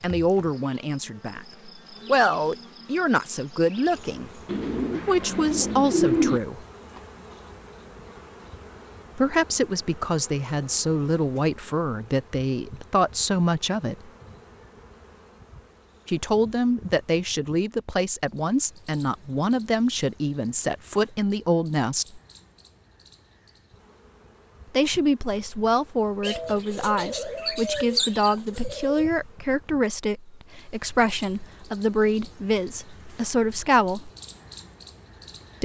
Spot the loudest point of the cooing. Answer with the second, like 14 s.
6 s.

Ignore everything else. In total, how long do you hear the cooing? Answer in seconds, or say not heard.
5 s.